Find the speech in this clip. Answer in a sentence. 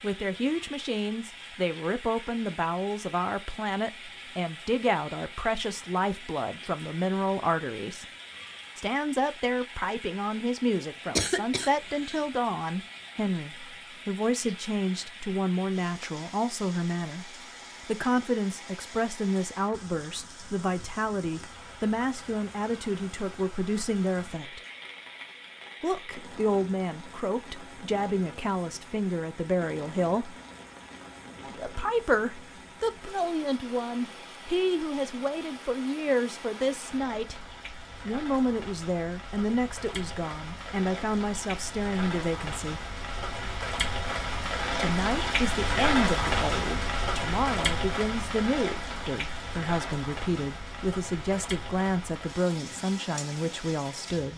The speech can be heard from 0.0 to 8.1 s, from 8.8 to 24.6 s, from 25.8 to 30.4 s, from 31.4 to 37.5 s, from 38.0 to 42.9 s and from 44.8 to 54.3 s.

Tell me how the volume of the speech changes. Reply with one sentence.
The loudness of the speech stays about the same.